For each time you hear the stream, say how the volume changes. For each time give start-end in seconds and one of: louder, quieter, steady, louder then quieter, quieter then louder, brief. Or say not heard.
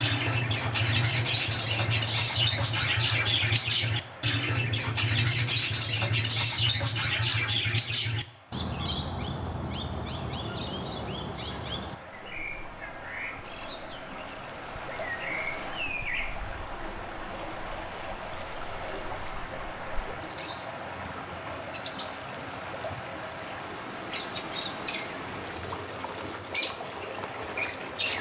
0.0-28.1 quieter then louder.